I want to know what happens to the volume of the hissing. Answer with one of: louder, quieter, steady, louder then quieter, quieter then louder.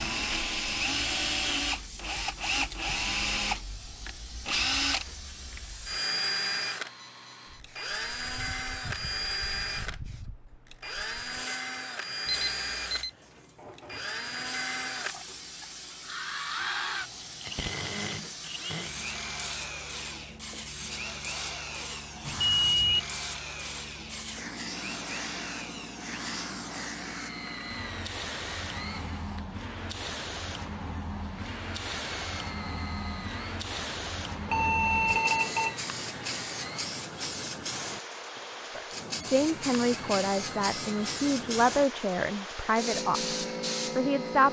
louder.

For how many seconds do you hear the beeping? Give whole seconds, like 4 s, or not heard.
3 s.